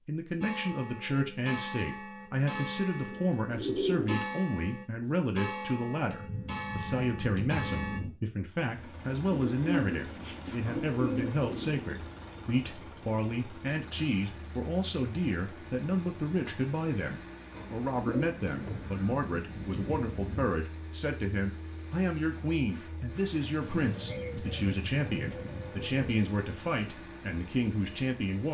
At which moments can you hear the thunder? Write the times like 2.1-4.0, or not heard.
6.1-8.1, 18.4-20.5.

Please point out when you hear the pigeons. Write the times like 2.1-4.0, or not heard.
2.9-4.3, 9.3-11.9, 17.5-19.1, 23.6-26.3.